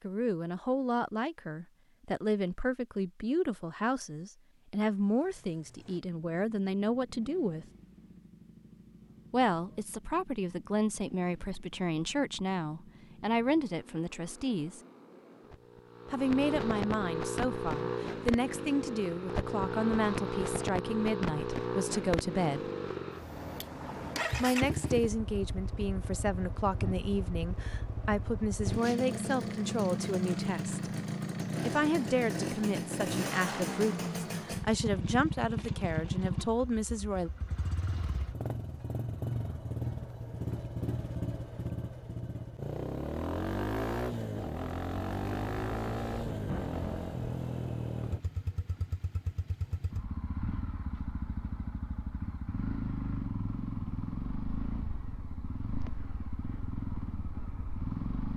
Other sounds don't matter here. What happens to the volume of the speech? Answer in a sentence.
The volume of the speech stays about the same.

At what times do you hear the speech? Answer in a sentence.
You can hear the speech from 0.0 to 7.7 s, from 9.3 to 14.8 s, from 16.1 to 22.7 s, from 24.4 to 30.9 s and from 31.6 to 37.3 s.